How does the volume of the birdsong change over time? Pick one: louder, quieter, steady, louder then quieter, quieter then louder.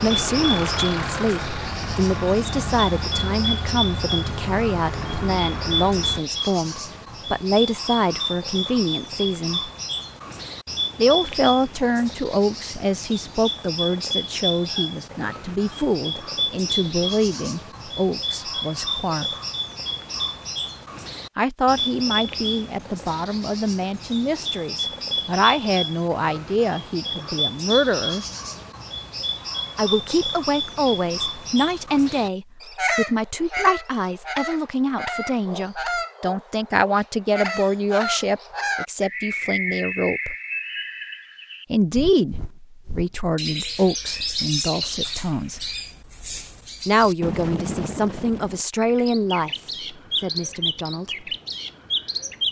steady.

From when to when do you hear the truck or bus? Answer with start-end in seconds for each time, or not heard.
0.0-6.2.